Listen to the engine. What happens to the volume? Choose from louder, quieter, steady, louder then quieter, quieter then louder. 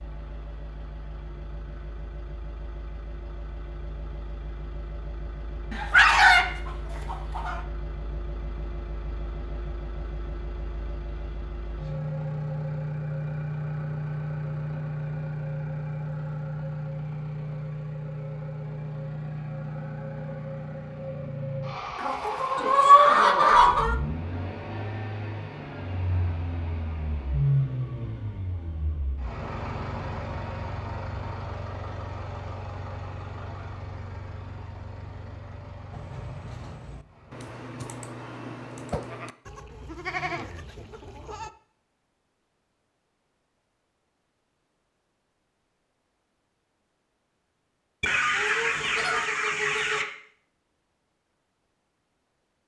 louder then quieter.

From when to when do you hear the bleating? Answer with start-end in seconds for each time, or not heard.
35.9-41.5.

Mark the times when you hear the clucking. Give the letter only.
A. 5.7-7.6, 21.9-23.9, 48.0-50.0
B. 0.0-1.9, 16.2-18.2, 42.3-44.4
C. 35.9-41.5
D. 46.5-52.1
A.